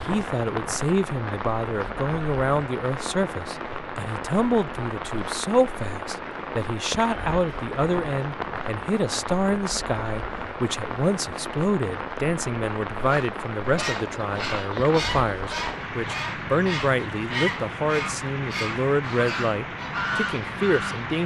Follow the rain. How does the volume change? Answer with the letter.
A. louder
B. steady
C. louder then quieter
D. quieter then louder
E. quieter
B.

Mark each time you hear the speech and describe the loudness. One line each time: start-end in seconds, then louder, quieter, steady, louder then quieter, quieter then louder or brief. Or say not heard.
0.0-21.2 steady.